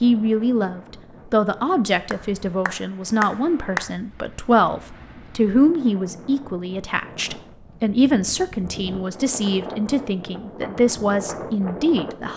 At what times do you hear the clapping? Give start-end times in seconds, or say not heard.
2.1-3.9.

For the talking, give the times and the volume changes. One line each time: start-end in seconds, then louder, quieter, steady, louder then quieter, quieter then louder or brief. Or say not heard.
0.0-12.3 steady.